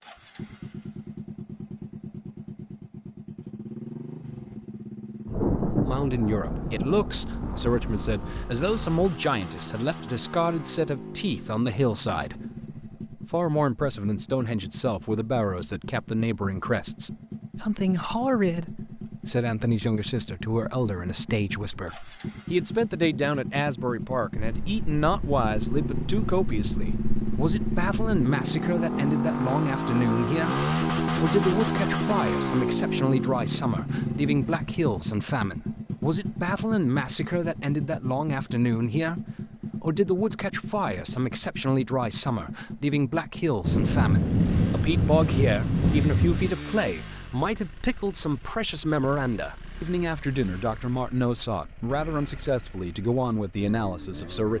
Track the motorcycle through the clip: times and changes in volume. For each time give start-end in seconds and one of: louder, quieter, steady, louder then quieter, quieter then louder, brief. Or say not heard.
0.0-54.5 louder then quieter.